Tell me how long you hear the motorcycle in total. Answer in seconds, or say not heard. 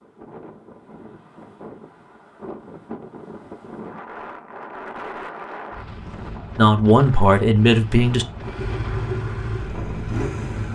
2 s.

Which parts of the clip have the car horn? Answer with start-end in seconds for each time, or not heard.
not heard.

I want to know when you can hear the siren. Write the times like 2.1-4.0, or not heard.
not heard.